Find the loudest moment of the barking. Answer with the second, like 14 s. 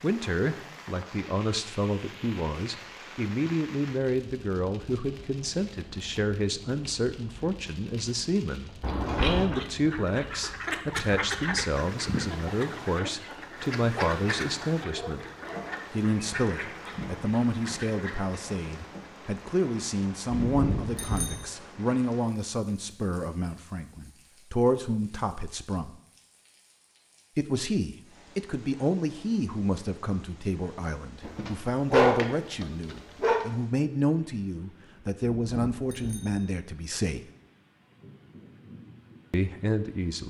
32 s.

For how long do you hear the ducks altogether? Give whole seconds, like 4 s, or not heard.
9 s.